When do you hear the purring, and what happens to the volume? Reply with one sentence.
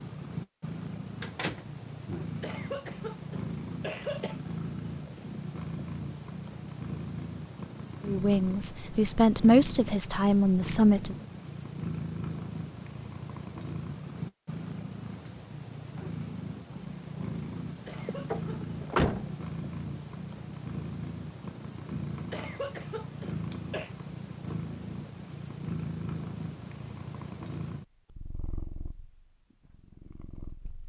You can hear the purring from 0.0 to 30.8 s, at a steady volume.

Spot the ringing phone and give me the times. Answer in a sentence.
The ringing phone can't be heard in this clip.